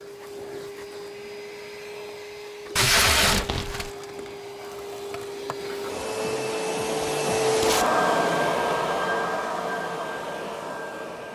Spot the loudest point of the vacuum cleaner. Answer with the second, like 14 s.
8 s.